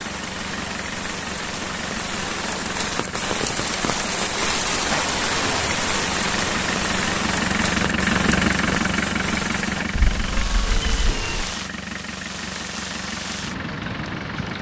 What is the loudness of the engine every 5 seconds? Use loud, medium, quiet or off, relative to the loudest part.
medium, loud, medium.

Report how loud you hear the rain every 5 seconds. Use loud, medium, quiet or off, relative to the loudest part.
loud, loud, medium.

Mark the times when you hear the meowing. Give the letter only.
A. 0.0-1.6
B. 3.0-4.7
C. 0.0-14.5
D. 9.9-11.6
D.